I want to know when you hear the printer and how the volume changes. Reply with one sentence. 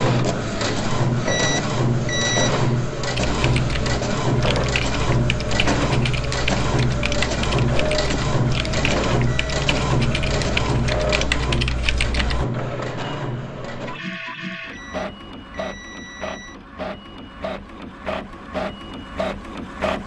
The printer can be heard from 0.0 to 20.0 s, getting quieter.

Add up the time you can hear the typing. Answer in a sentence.
The typing can be heard for 9 seconds in total.